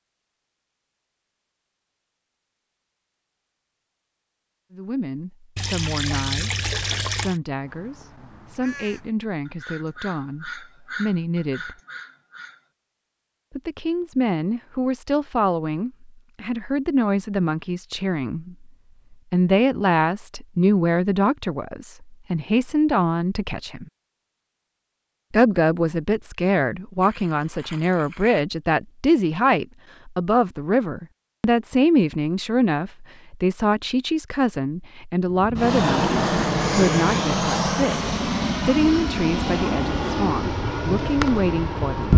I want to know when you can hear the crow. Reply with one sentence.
The crow can be heard from 7.6 to 12.6 s.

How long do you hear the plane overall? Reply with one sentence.
You can hear the plane for 7 seconds altogether.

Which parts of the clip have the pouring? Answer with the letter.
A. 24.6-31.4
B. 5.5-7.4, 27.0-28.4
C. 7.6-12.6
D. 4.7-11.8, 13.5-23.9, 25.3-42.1
B.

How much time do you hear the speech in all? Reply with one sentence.
The speech can be heard for 34 seconds in total.